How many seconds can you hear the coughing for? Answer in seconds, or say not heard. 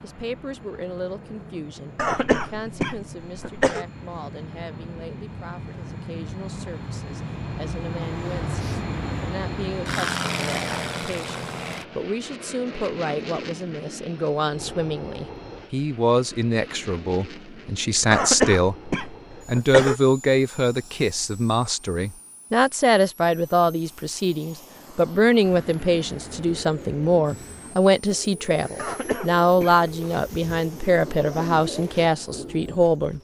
5 s.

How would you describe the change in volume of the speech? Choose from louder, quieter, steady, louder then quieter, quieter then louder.
louder.